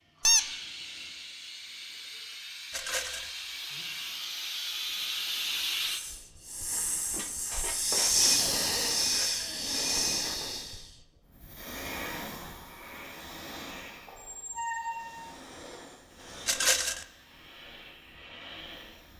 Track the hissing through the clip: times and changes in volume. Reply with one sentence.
The hissing can be heard from 0.1 to 19.1 s, getting louder then quieter.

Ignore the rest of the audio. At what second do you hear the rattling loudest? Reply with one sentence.
The loudest moment of the rattling is at 17 seconds.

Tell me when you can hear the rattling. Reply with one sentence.
You can hear the rattling from 2.7 to 3.3 s, from 9.0 to 9.5 s and from 16.4 to 17.1 s.